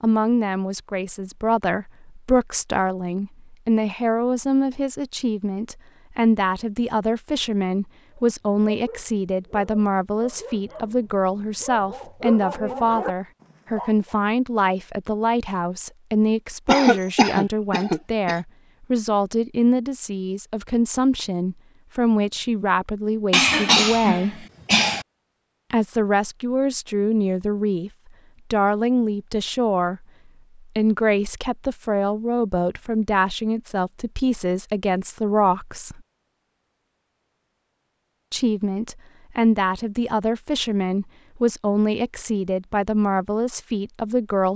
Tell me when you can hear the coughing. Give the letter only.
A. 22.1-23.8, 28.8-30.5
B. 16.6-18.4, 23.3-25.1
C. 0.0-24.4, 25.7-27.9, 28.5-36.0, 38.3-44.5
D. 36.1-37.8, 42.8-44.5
B.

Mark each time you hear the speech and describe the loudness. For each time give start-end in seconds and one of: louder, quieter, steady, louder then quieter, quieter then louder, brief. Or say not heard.
0.0-24.4 steady
25.7-27.9 brief
28.5-36.0 steady
38.3-44.5 steady.